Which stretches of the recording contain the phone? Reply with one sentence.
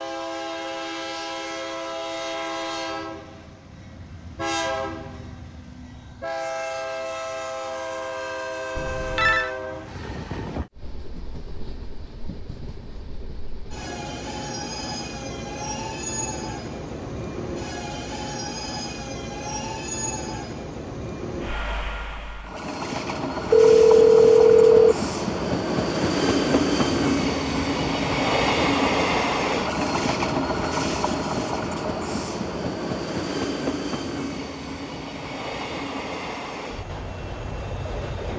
The phone can be heard from 8.8 to 9.5 s and from 23.5 to 24.9 s.